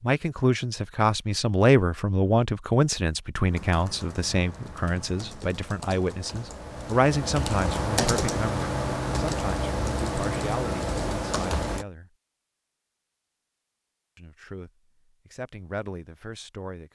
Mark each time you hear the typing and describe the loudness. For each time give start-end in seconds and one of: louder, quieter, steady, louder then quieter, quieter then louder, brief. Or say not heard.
3.5-11.8 louder.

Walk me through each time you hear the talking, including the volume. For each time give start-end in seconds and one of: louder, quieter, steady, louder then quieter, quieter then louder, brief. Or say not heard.
0.0-12.1 quieter
14.2-16.9 brief.